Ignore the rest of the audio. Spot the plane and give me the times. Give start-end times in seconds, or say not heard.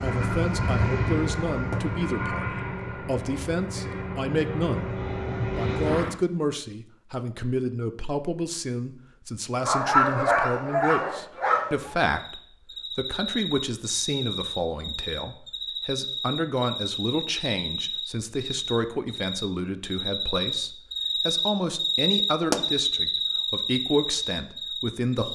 0.0-6.2.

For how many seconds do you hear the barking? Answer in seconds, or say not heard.
2 s.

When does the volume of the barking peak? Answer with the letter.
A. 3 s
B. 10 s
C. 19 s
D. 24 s
B.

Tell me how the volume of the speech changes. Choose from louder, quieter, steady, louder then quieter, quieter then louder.
steady.